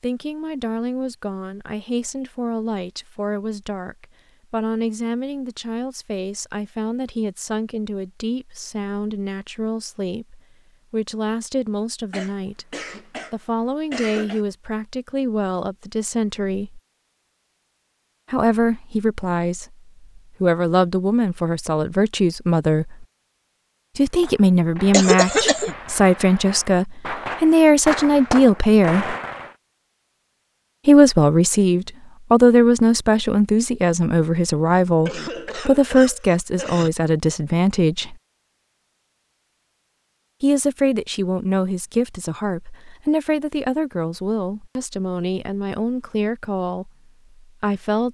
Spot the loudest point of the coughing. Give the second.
25 s.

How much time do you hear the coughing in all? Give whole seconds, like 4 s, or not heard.
5 s.